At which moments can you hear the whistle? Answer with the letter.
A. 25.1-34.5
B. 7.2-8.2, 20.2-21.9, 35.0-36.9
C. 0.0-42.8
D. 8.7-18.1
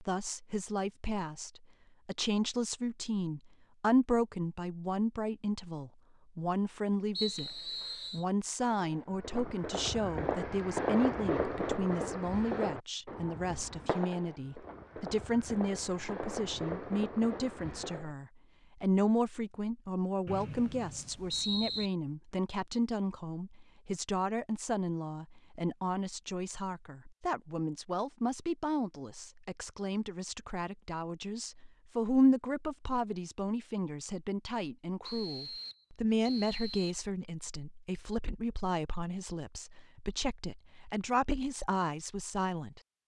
B.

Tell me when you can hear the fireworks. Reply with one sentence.
You can hear the fireworks from 8.7 to 18.1 s.